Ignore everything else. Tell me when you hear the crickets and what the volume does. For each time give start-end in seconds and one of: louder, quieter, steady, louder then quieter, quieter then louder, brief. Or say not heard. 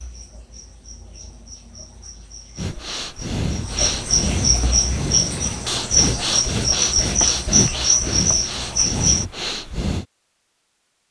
0.0-9.2 louder.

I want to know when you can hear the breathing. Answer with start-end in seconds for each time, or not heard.
2.5-10.1.